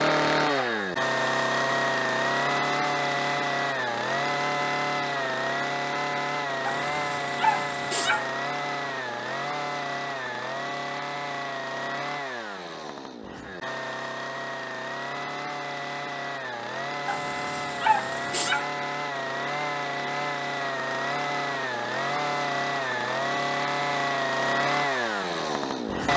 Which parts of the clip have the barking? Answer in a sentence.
You can hear the barking from 6.7 to 8.2 s and from 17.1 to 18.6 s.